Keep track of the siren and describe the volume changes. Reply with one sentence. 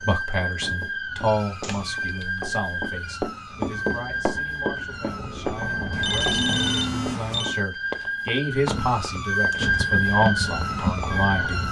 The volume of the siren goes up.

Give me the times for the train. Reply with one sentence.
The train can be heard from 3.5 to 6.8 s and from 9.4 to 11.6 s.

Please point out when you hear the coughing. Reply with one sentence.
The coughing can't be heard in this clip.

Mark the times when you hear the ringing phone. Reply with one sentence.
You can hear the ringing phone from 1.2 to 3.1 s and from 5.9 to 7.5 s.